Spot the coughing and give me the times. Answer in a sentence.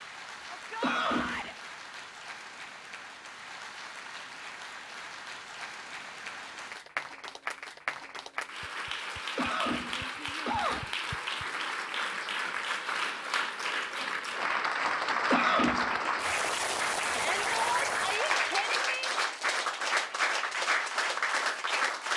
The coughing can be heard from 0.8 to 1.5 s, from 9.3 to 10.9 s and from 15.3 to 16.0 s.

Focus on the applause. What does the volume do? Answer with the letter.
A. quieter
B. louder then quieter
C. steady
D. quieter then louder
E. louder
E.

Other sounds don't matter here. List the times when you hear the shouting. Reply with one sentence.
You can hear the shouting from 0.5 to 1.6 s and from 17.1 to 19.1 s.